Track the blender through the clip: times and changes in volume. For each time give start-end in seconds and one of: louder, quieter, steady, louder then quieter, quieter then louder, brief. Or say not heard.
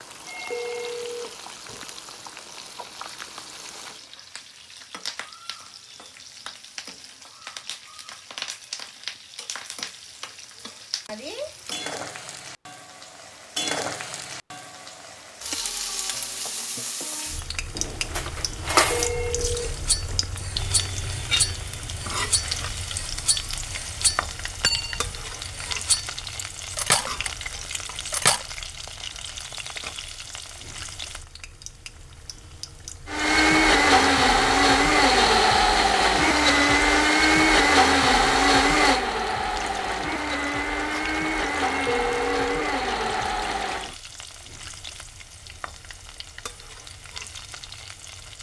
33.0-44.0 quieter.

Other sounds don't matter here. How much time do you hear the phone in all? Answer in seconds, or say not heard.
5 s.